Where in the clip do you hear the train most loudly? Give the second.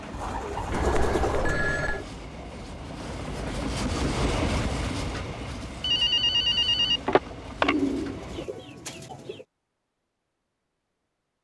4 s.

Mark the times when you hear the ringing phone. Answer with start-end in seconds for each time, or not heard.
0.7-2.0, 5.8-7.8.